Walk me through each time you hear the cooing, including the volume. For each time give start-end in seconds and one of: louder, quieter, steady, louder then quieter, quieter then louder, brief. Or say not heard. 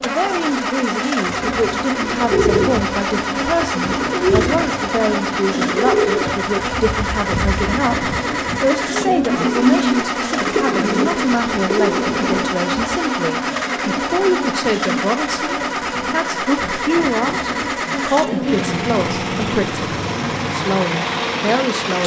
1.2-12.5 steady.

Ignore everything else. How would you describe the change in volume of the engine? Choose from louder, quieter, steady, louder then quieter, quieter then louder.
steady.